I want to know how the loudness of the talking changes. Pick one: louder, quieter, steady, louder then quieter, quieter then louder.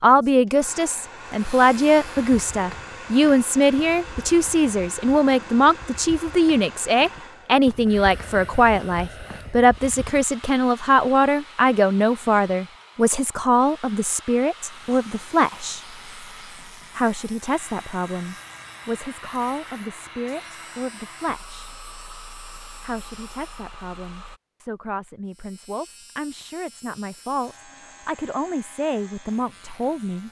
quieter.